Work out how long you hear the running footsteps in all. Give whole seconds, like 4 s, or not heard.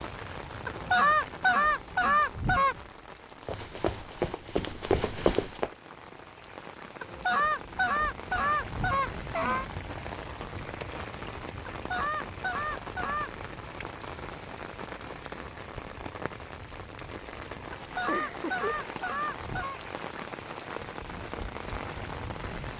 2 s.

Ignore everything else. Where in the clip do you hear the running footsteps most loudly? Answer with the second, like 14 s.
5 s.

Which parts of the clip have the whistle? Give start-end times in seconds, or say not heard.
not heard.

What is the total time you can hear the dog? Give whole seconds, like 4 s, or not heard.
not heard.